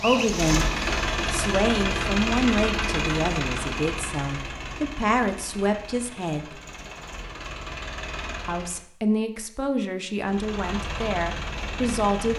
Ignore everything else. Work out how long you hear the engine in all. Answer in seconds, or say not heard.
11 s.